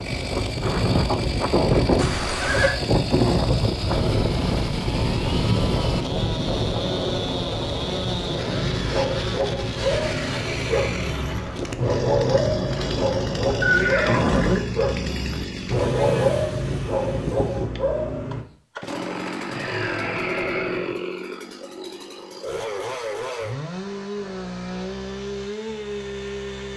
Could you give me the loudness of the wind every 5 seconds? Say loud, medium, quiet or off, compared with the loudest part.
loud, loud, medium, off, off, off.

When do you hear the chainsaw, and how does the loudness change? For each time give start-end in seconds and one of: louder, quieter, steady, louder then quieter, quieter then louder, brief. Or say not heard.
0.0-26.7 steady.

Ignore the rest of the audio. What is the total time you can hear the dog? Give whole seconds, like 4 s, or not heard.
10 s.